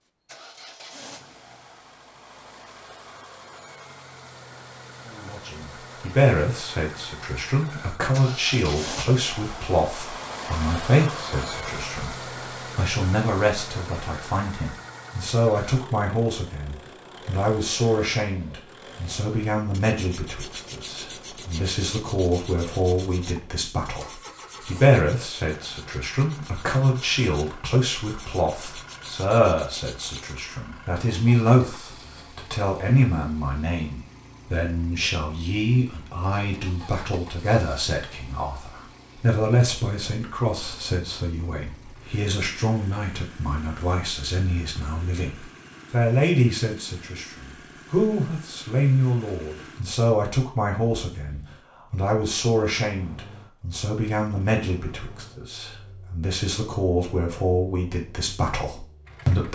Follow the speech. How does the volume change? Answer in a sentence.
The loudness of the speech stays about the same.